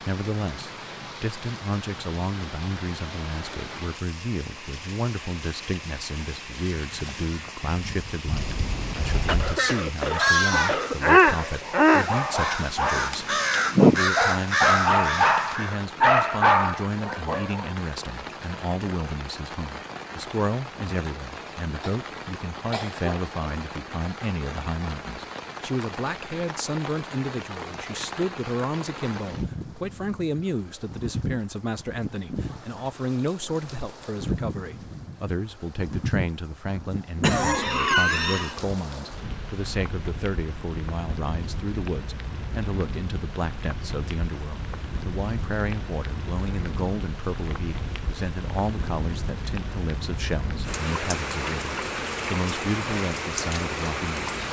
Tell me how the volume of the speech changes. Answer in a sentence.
The loudness of the speech stays about the same.